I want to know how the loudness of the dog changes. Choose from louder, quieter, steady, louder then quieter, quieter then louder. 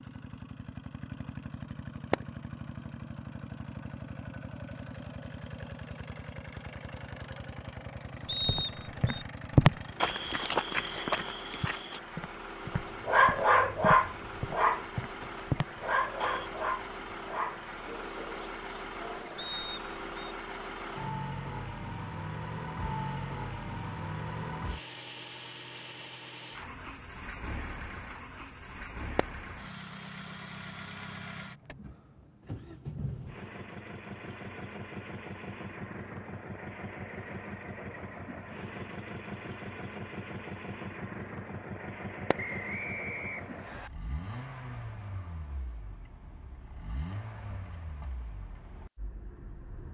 quieter.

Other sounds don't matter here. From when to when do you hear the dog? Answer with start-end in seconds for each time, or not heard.
12.7-19.5.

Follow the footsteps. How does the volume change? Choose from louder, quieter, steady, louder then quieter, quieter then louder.
quieter then louder.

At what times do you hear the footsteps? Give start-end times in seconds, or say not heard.
8.4-16.5.